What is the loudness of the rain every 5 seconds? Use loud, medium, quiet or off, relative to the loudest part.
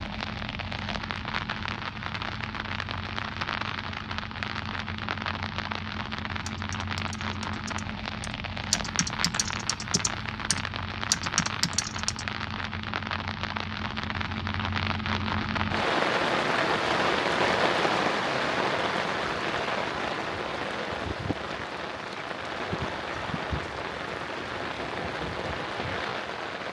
medium, medium, medium, loud, medium, medium.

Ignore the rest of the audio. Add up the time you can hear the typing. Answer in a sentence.
You can hear the typing for 6 seconds altogether.